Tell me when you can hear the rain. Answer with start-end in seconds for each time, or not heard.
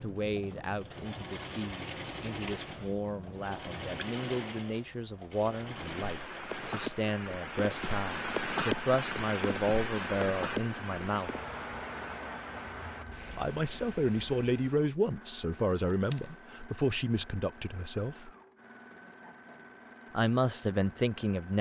0.0-14.8.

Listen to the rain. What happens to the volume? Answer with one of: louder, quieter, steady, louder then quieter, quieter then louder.
louder then quieter.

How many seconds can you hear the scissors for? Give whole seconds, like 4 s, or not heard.
2 s.